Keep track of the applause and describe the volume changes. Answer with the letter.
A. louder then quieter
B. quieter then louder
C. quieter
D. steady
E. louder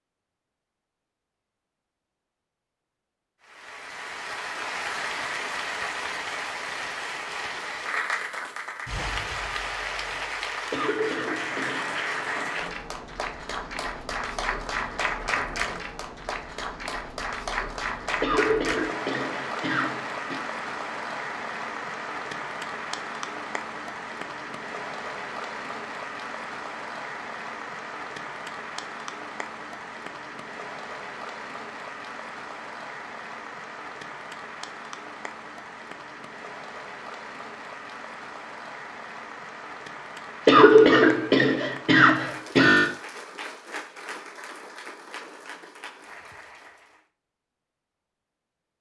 C.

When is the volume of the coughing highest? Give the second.
41 s.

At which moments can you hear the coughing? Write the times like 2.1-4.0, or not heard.
10.7-12.0, 18.2-20.4, 40.5-42.9.